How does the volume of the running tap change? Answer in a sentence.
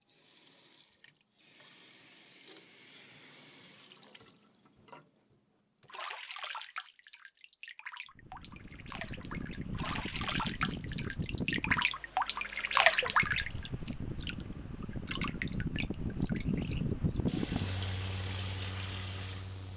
The loudness of the running tap goes up, then down.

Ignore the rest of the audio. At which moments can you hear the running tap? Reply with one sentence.
The running tap can be heard from 0.1 to 19.7 s.